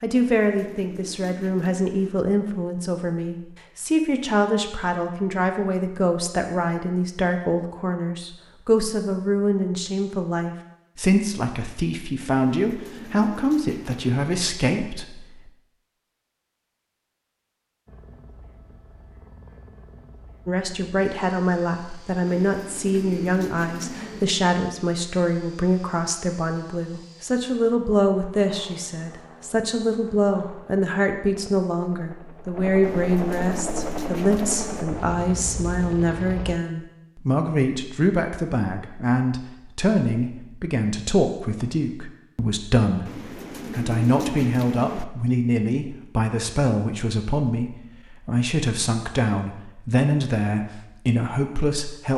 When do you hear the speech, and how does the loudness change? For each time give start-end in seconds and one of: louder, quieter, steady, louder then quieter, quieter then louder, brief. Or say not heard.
0.0-15.2 steady
20.4-52.1 steady.